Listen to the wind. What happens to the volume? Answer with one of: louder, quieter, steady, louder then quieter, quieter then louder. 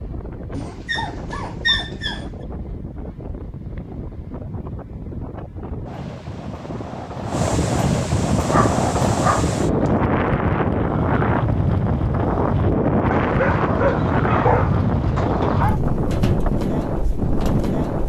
louder.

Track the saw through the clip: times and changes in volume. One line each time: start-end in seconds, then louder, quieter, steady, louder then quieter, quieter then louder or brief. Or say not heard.
not heard.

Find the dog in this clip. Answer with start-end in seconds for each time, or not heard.
0.5-2.2, 8.3-9.9, 13.1-15.8.